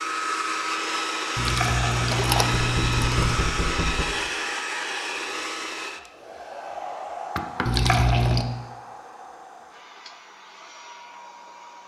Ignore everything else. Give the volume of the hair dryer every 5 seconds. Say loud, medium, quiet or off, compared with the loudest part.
loud, medium, quiet.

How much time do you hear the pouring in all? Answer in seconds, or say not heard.
3 s.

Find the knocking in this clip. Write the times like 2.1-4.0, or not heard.
2.6-4.0, 7.3-7.9.